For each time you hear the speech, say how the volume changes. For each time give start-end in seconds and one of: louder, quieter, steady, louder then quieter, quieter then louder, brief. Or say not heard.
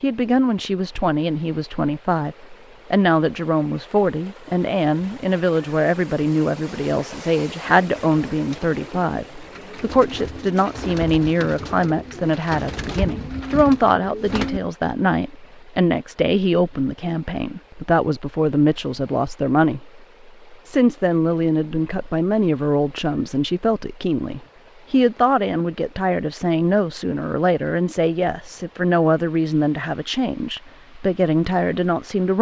0.0-32.3 steady.